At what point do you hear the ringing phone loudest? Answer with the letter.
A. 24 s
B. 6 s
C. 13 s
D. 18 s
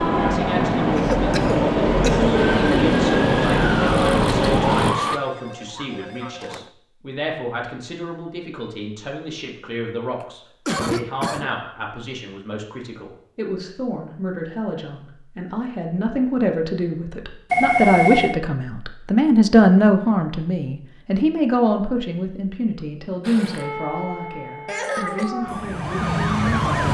D.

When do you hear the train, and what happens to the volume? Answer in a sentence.
You can hear the train from 0.0 to 5.0 s, at a steady volume.